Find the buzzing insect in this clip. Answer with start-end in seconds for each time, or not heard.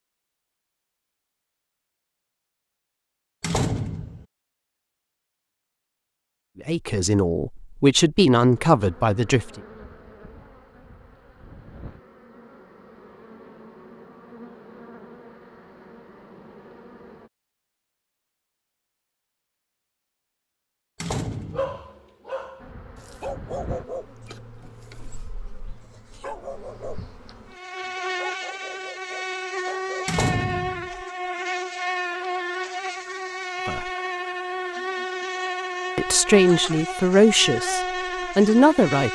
8.5-17.3, 22.6-39.0.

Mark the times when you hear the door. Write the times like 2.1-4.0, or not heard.
3.4-4.2, 21.0-21.8, 30.1-30.9.